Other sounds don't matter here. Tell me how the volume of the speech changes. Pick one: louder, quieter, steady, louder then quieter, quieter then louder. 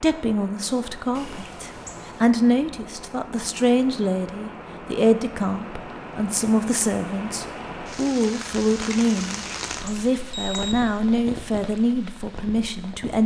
steady.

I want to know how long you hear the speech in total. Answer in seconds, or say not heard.
13 s.